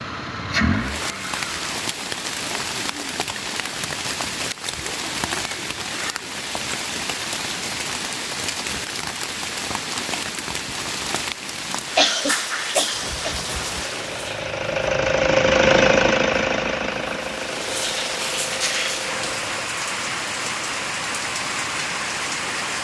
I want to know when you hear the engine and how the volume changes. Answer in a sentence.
You can hear the engine briefly from 0.0 to 1.8 s; and from 12.9 to 19.7 s, getting louder then quieter.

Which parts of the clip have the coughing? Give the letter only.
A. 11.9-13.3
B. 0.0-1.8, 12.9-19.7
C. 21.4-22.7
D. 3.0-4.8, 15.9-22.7
A.